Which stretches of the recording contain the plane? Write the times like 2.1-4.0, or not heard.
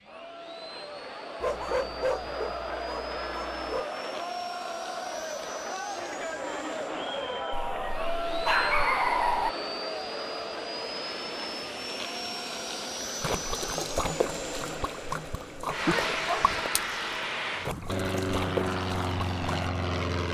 0.0-20.3.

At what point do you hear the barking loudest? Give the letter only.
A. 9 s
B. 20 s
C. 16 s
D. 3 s
A.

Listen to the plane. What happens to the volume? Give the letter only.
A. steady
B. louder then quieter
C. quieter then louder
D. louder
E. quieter
D.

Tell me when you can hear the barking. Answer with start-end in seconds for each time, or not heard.
1.4-3.9, 7.5-9.5, 15.4-16.4.